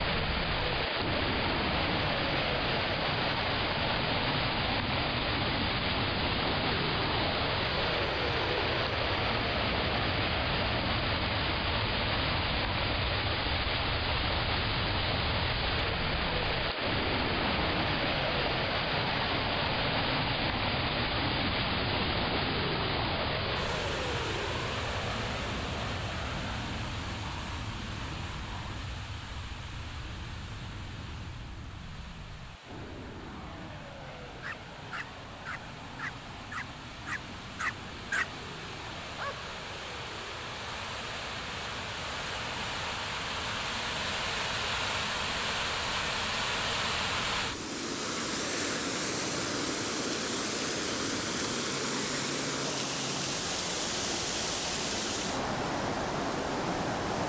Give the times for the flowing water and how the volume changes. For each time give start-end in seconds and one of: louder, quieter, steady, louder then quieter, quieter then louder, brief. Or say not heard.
0.0-57.2 quieter then louder.